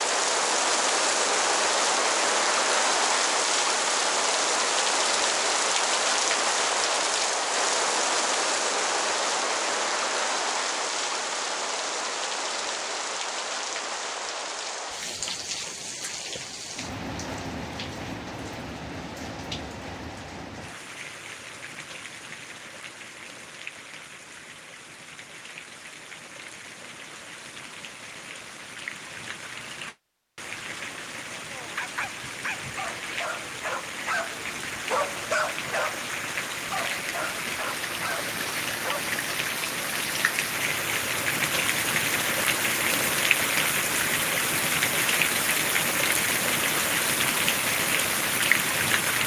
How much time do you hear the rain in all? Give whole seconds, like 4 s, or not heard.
49 s.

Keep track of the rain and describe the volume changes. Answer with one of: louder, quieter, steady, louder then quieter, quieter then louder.
quieter then louder.